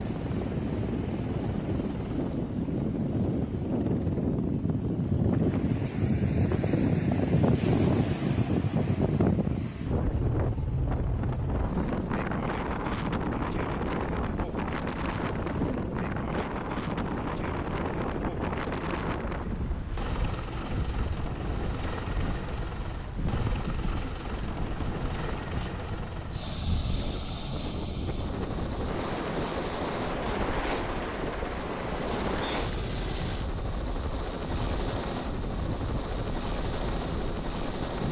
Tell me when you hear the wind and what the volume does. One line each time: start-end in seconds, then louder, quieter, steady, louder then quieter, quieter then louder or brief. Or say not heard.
0.0-38.0 quieter.